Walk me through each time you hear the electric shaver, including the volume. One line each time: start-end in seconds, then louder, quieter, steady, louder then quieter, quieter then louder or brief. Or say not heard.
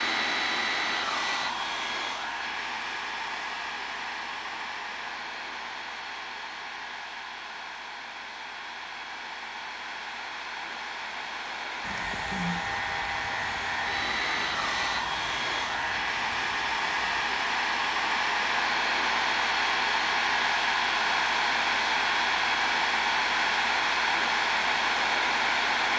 11.8-17.4 quieter.